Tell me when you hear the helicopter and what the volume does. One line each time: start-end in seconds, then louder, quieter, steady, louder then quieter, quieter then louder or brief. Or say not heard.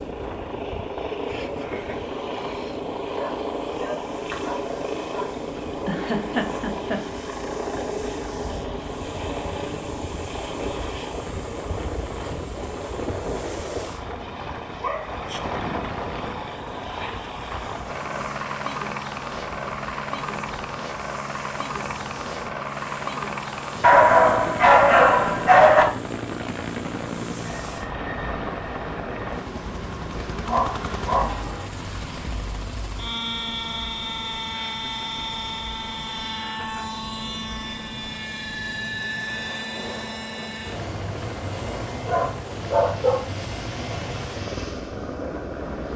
0.0-45.9 steady.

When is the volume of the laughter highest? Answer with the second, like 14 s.
6 s.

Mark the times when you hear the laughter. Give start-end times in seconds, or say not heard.
5.8-7.0, 34.6-35.2, 36.4-37.0.